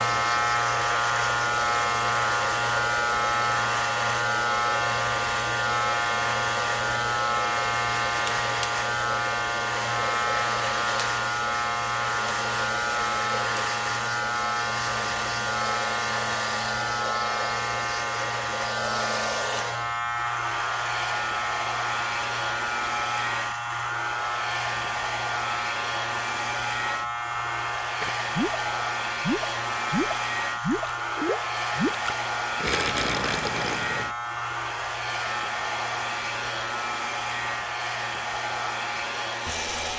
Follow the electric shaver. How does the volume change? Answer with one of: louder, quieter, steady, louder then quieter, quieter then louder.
quieter.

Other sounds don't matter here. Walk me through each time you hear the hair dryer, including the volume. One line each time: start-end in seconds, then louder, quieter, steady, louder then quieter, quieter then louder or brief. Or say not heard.
0.0-39.9 steady.